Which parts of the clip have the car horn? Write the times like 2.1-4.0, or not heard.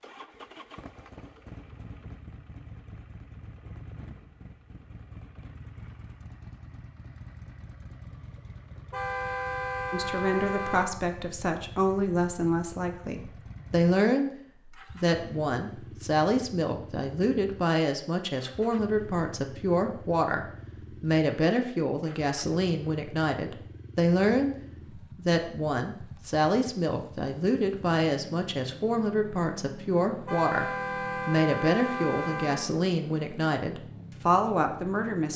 8.9-10.9, 30.2-32.7.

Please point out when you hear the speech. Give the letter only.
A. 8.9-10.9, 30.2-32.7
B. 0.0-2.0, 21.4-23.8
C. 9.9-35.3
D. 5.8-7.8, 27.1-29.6
C.